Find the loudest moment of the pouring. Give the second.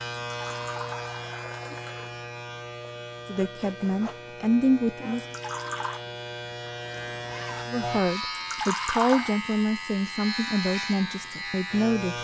9 s.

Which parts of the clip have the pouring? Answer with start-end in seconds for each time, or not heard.
0.3-2.2, 5.2-6.0, 8.4-9.3.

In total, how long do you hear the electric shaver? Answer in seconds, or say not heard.
12 s.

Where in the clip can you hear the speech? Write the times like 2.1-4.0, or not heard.
3.2-5.2, 7.7-12.2.